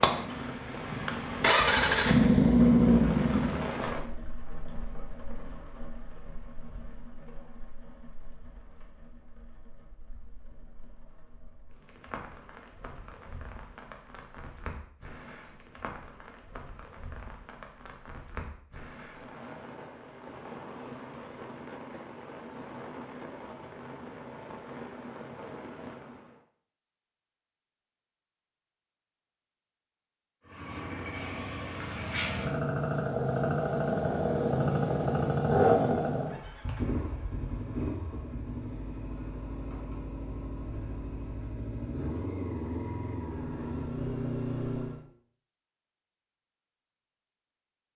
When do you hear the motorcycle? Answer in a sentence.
The motorcycle can be heard from 0.0 to 3.7 s and from 30.4 to 45.0 s.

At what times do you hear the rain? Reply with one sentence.
You can hear the rain from 0.0 to 26.4 s.